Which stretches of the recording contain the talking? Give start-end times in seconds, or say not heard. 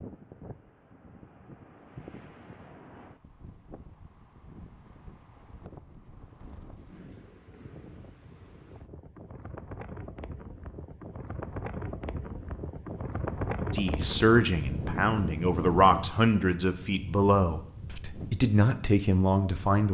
13.7-19.8.